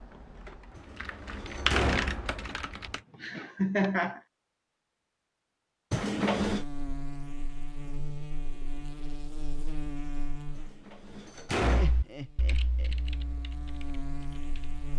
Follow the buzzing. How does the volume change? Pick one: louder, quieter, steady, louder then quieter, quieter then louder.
quieter then louder.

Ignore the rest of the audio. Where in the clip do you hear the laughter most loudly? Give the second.
4 s.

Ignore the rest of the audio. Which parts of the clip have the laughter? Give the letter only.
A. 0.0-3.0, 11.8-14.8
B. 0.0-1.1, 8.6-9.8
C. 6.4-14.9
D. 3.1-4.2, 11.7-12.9
D.